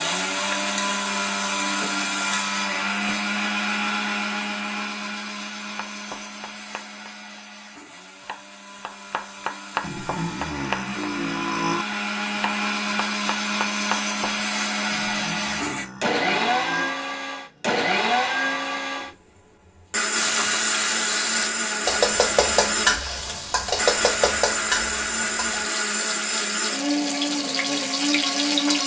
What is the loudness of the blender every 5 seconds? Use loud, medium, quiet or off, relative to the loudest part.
loud, quiet, loud, loud, loud, loud.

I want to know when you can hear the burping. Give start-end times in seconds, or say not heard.
9.8-11.8, 14.9-16.9.